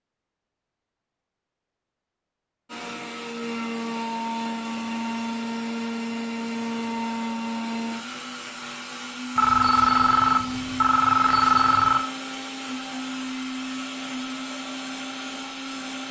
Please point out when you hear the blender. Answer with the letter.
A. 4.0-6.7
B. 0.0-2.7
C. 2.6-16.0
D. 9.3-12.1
C.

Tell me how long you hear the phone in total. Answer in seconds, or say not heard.
3 s.